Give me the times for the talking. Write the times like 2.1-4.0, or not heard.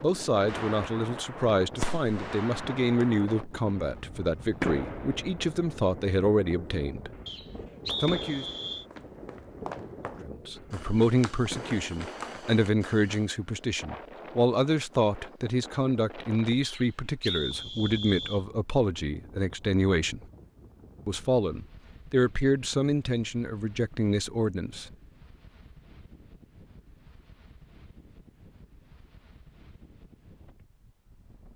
0.0-7.2, 8.0-8.4, 10.2-20.2, 21.1-24.9.